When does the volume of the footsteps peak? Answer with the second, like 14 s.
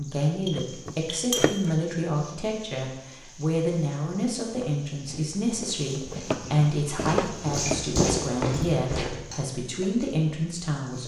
8 s.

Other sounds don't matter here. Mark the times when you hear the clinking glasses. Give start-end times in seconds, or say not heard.
0.4-1.6.